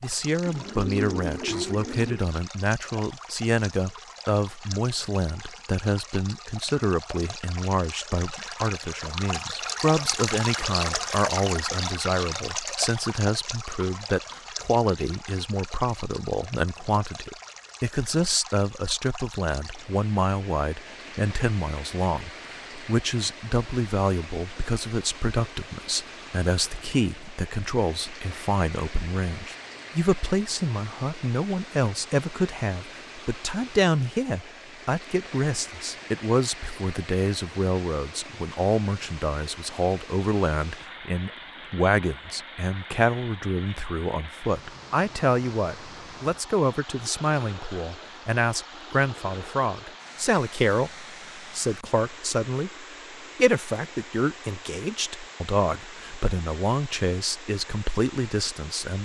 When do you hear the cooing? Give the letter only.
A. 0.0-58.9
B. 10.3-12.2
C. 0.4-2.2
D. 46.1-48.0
C.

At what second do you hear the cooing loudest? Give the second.
1 s.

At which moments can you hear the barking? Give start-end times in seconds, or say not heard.
not heard.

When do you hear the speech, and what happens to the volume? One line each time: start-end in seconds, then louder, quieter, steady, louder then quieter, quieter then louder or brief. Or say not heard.
0.0-58.9 steady.